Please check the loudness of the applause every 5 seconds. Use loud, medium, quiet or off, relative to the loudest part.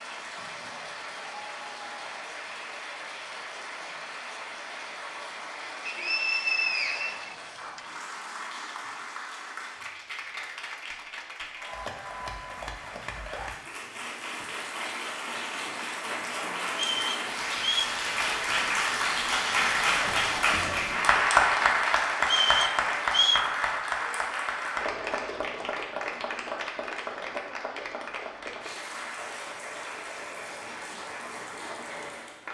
quiet, quiet, quiet, loud, loud, medium, quiet.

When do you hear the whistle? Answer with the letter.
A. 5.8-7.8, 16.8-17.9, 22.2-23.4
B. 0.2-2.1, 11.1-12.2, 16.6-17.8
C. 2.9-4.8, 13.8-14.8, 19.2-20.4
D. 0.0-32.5
A.